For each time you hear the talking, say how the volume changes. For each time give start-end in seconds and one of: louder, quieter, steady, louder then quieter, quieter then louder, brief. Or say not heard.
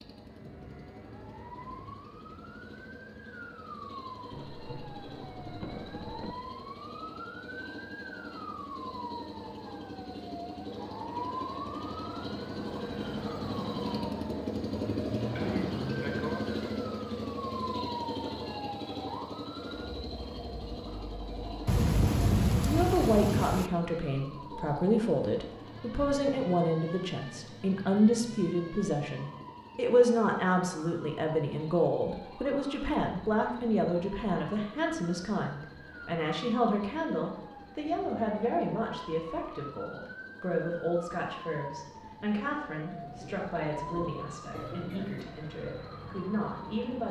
22.6-47.0 quieter.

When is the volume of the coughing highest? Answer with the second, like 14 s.
16 s.